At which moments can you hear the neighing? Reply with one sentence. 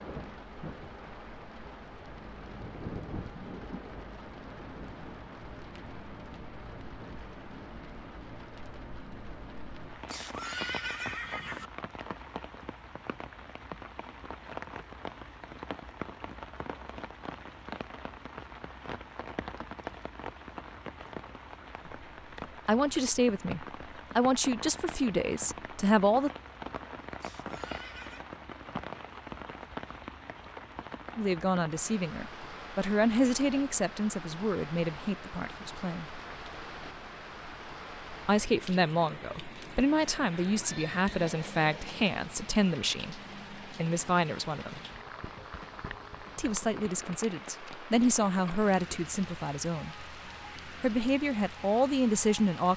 You can hear the neighing from 10.1 to 11.7 s, from 27.2 to 28.2 s and from 40.6 to 42.1 s.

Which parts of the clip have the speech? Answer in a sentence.
The speech can be heard from 22.6 to 26.3 s, from 31.1 to 36.0 s, from 38.2 to 44.8 s and from 46.4 to 52.7 s.